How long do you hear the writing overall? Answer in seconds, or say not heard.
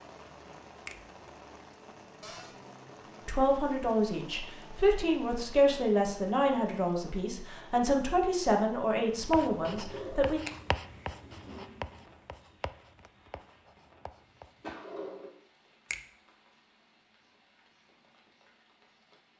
6 s.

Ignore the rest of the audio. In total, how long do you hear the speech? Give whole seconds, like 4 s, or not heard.
7 s.